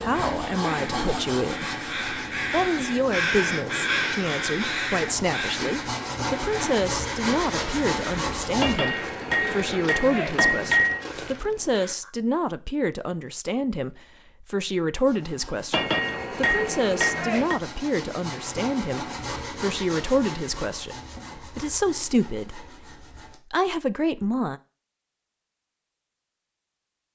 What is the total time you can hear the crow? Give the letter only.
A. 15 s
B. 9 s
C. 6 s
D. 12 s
D.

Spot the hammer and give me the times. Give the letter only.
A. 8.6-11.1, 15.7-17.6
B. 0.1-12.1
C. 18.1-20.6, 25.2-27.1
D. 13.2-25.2
A.